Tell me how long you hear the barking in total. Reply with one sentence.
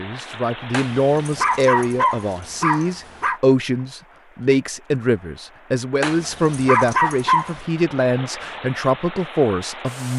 The barking can be heard for 4 seconds in total.